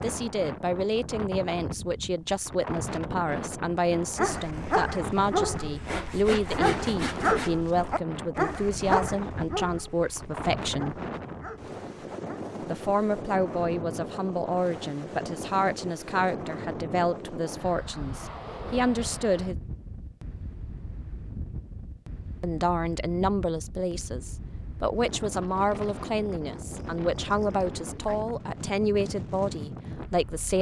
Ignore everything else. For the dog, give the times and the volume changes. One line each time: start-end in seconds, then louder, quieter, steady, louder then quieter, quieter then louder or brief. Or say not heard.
4.2-12.4 quieter.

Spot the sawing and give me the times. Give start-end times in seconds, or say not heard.
5.8-7.5.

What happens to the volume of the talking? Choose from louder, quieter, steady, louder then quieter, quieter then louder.
steady.